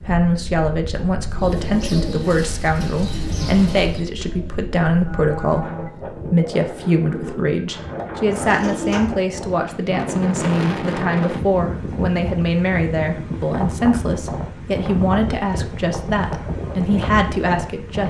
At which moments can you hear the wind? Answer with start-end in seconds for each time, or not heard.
0.0-18.0.